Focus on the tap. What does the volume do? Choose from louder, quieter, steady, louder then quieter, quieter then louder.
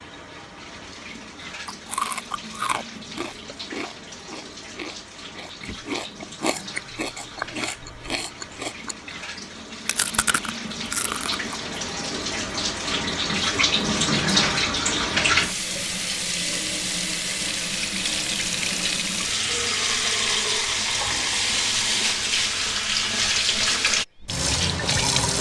louder.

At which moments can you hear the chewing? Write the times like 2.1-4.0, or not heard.
1.6-11.6.